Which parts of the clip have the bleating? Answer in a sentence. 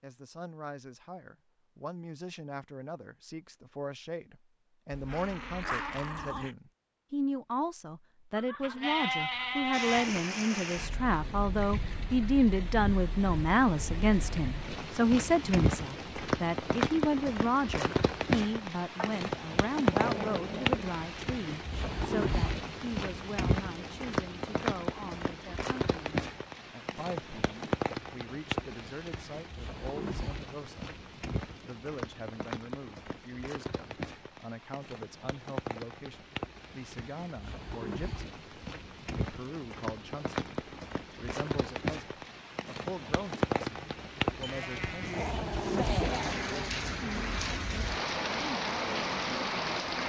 The bleating can be heard from 8.3 to 10.2 s and from 44.4 to 46.0 s.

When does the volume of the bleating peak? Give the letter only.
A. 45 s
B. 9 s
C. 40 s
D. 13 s
B.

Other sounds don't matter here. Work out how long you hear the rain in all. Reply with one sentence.
The rain can be heard for 40 seconds in total.